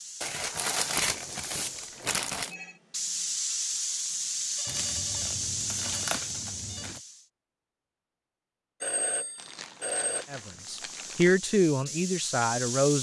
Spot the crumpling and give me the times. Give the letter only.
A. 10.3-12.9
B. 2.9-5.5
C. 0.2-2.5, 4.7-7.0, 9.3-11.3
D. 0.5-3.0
C.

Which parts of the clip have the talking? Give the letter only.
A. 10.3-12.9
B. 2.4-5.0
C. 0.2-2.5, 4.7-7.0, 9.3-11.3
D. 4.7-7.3
A.